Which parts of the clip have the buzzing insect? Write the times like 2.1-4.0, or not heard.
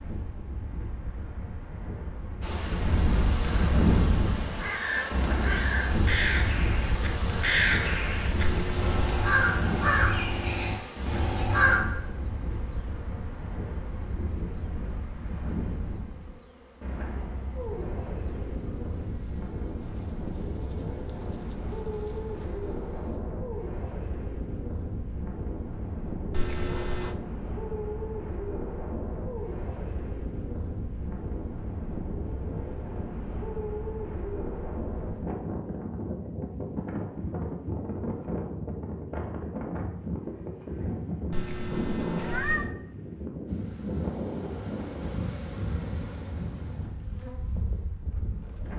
2.4-23.2, 43.5-48.7.